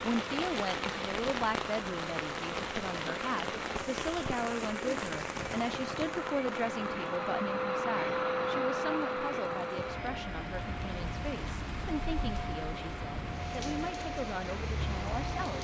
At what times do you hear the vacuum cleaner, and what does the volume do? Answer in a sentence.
You can hear the vacuum cleaner from 0.0 to 15.5 s, getting louder then quieter.